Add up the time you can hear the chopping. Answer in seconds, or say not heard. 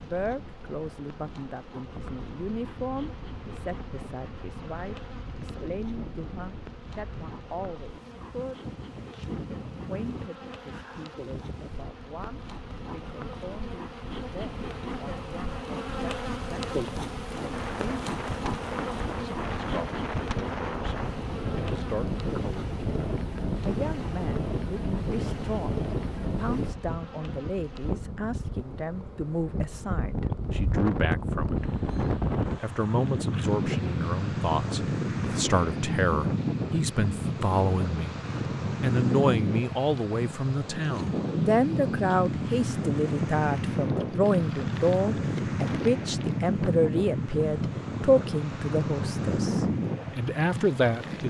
not heard.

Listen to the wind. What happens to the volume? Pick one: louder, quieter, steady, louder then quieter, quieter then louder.
louder.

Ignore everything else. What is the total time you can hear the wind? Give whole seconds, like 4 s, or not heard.
51 s.